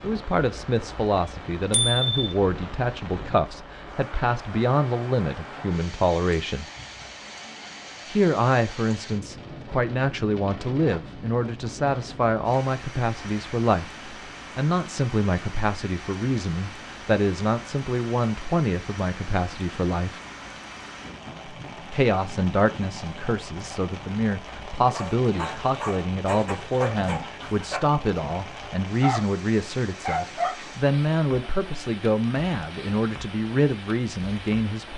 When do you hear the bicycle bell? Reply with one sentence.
The bicycle bell can be heard from 1.7 to 2.3 s.